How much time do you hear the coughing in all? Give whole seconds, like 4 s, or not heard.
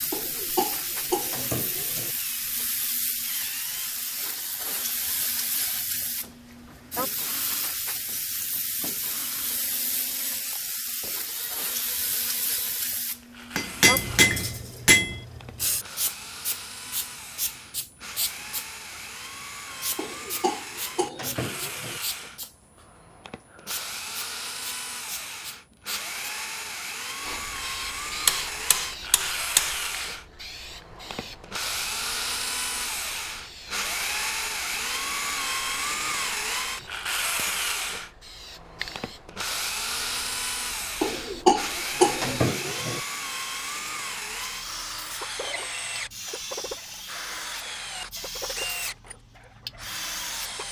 6 s.